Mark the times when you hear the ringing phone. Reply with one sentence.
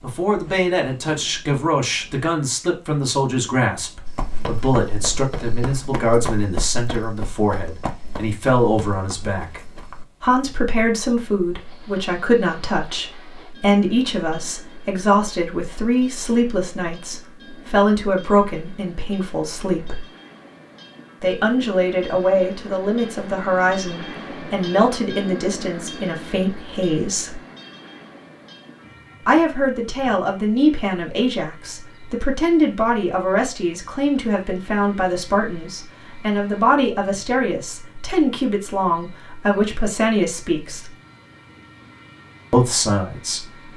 The ringing phone can't be heard in this clip.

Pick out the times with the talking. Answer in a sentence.
The talking can be heard from 0.0 to 9.6 s, from 10.2 to 20.1 s, from 21.2 to 27.4 s, from 29.2 to 40.9 s and from 42.5 to 43.5 s.